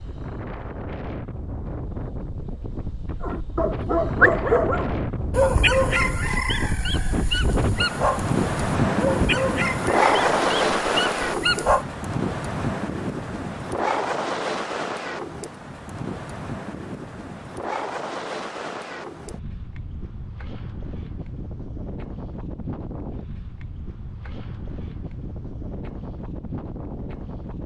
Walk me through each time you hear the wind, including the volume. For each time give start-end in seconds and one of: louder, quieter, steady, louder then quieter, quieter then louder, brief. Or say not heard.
0.0-27.6 louder then quieter.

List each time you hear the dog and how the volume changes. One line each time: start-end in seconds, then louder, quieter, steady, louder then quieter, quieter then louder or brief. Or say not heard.
3.2-11.8 quieter.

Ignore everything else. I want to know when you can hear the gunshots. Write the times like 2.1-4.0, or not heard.
not heard.